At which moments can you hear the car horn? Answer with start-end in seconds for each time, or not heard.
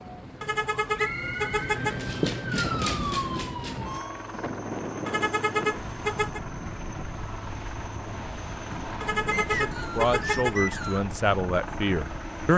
0.4-2.0, 5.0-6.4, 9.0-10.6.